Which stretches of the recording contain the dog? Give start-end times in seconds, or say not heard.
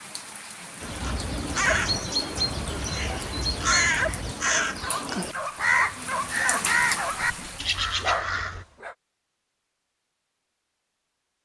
1.1-8.9.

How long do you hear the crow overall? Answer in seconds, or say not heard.
8 s.